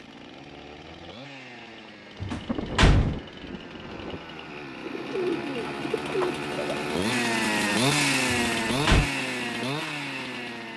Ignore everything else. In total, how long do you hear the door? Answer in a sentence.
The door can be heard for 2 seconds in total.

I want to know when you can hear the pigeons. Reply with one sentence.
The pigeons can be heard from 4.8 to 6.8 s.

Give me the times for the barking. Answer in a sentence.
The barking can't be heard in this clip.